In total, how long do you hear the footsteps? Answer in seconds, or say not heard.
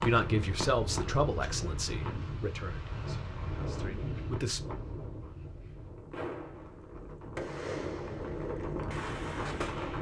not heard.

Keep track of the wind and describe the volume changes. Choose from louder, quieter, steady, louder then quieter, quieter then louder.
quieter then louder.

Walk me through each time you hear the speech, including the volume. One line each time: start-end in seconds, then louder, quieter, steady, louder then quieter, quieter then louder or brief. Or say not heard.
0.0-4.8 quieter then louder.